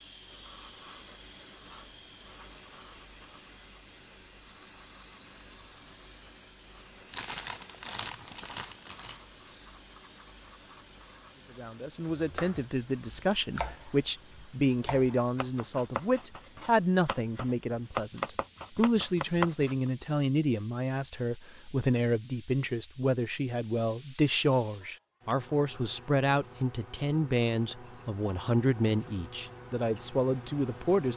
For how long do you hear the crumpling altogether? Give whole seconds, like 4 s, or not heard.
2 s.